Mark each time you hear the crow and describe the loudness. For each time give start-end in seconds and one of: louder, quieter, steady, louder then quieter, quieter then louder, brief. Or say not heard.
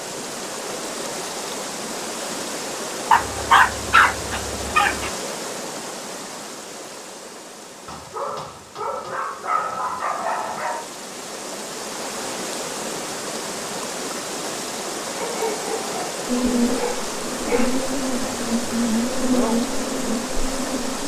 not heard.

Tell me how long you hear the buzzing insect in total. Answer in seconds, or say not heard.
5 s.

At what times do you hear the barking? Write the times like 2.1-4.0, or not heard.
3.1-5.1, 7.8-10.8, 15.2-17.8.